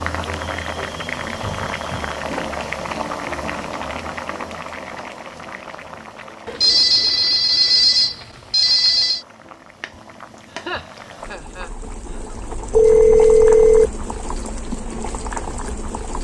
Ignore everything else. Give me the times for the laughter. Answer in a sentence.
The laughter can be heard from 10.5 to 12.3 s.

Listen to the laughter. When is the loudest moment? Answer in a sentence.
The volume of the laughter peaks at 11 seconds.